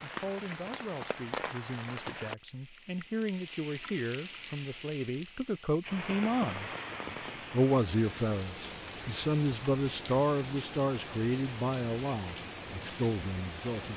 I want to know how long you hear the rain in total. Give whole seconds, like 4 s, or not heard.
14 s.